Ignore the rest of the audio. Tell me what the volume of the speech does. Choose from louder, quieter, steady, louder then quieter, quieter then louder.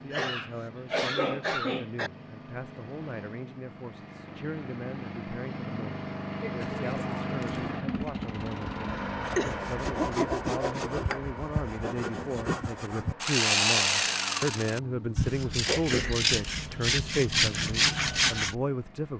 louder.